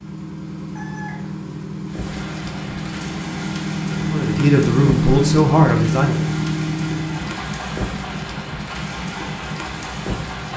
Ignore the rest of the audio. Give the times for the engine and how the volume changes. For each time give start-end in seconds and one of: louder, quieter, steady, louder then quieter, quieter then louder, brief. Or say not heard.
0.0-10.5 louder then quieter.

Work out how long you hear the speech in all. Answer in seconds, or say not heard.
2 s.